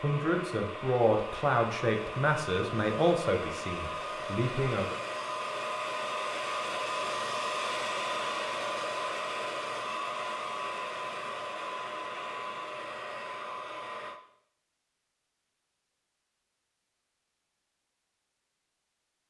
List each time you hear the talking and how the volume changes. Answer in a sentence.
You can hear the talking from 0.0 to 5.0 s, getting quieter.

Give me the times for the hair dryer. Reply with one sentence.
The hair dryer can be heard from 0.0 to 14.2 s.